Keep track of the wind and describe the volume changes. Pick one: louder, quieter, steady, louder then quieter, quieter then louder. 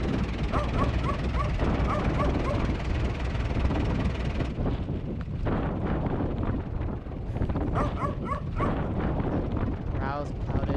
steady.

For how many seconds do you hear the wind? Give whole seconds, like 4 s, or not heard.
11 s.